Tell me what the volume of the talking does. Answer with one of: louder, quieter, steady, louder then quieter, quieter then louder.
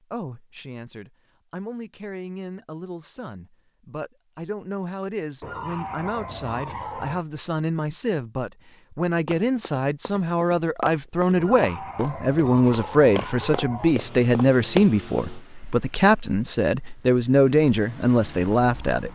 louder.